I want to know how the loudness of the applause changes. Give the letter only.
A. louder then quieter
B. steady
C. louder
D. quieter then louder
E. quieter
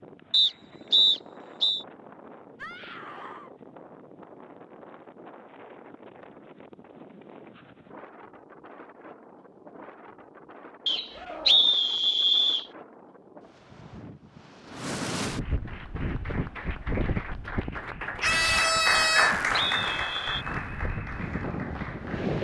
A.